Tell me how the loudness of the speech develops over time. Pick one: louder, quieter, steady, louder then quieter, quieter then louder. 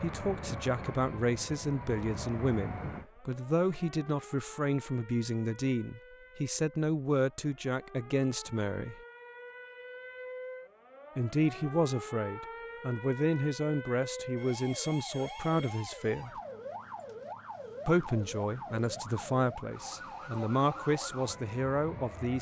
steady.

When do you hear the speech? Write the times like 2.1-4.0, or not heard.
0.0-9.0, 11.2-16.3, 17.9-22.3.